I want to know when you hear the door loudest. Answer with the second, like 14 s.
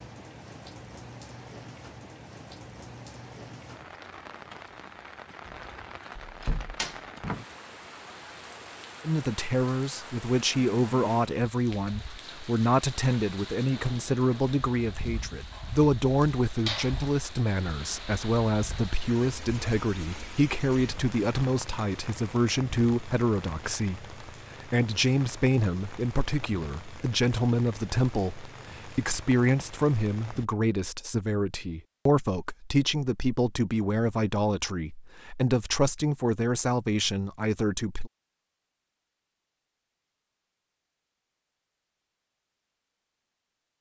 7 s.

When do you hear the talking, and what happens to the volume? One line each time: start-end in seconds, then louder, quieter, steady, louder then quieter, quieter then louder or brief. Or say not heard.
9.0-38.1 steady.